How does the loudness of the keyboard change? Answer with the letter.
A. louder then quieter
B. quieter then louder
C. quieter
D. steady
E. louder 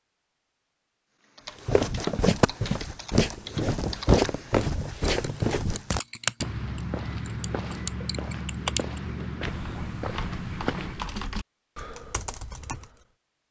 A.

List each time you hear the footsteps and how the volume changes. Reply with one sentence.
The footsteps can be heard from 1.6 to 11.2 s, getting quieter.